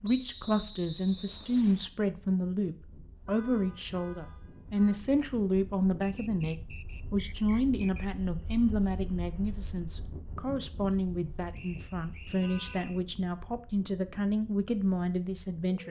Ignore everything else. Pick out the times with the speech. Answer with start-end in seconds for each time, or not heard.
0.0-15.8.